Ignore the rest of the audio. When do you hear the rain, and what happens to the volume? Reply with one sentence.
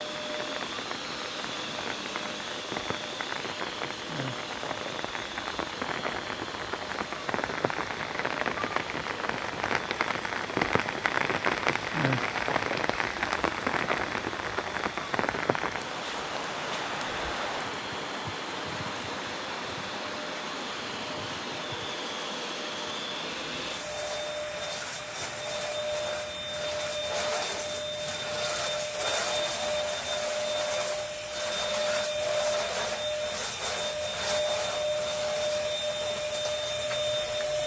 The rain can be heard from 0.0 to 37.6 s, getting louder then quieter.